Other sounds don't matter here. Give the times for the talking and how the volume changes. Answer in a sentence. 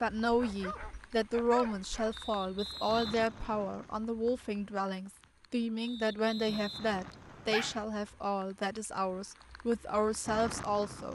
You can hear the talking from 0.0 to 11.1 s, at a steady volume.